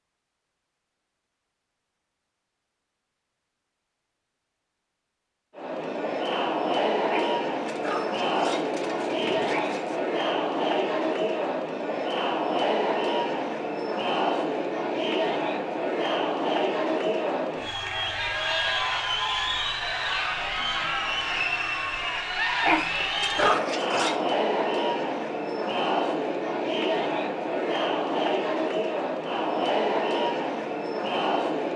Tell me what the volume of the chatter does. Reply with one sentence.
The loudness of the chatter stays about the same.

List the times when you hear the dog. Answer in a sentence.
The dog can be heard from 7.0 to 10.0 s and from 22.6 to 24.2 s.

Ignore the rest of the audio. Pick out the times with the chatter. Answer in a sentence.
The chatter can be heard from 5.5 to 31.7 s.